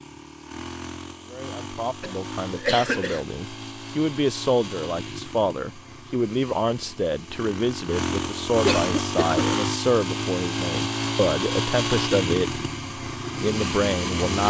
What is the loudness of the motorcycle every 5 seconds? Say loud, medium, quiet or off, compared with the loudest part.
medium, loud, loud.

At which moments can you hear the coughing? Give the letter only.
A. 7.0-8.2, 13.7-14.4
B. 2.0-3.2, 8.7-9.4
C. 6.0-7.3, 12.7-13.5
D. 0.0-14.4
B.